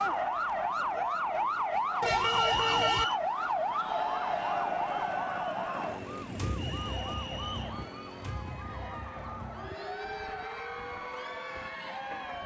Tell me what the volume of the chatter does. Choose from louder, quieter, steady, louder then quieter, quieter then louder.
louder.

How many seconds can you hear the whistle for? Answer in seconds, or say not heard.
2 s.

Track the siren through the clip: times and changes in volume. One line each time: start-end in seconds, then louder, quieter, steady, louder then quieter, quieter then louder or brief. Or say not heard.
0.0-12.4 quieter.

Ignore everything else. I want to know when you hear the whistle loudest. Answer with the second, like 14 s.
3 s.